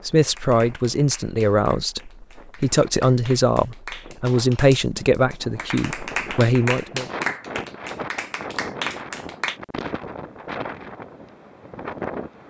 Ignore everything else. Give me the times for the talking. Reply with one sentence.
You can hear the talking from 0.1 to 7.0 s.